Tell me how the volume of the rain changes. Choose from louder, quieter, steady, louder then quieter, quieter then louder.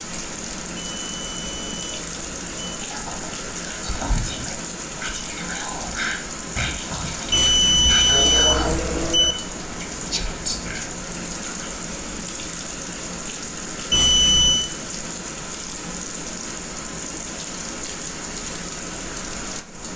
steady.